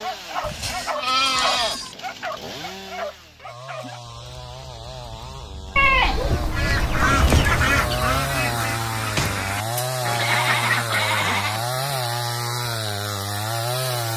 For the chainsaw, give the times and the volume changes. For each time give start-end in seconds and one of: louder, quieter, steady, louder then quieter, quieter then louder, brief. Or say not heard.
0.0-14.1 louder.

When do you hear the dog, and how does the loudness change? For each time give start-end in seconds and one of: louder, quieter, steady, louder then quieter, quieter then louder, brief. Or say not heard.
0.0-6.5 quieter.